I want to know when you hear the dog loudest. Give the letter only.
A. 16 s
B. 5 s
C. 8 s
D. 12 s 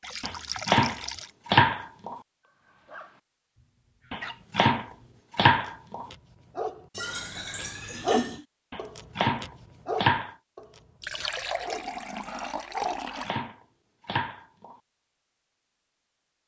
C.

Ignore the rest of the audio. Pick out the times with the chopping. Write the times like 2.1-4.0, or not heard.
0.2-2.2, 4.1-6.0, 8.7-10.3, 12.8-14.8.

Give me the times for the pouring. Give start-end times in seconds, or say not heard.
0.0-1.3, 6.9-8.4, 11.0-13.3.